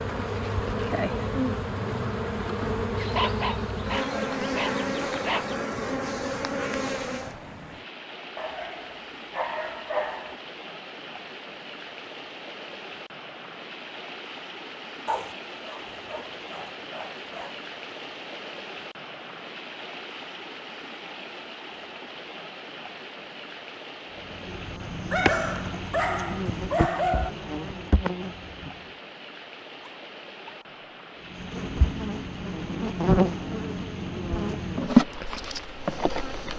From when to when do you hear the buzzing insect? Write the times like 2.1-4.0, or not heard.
0.0-7.4, 24.2-28.8, 31.3-36.5.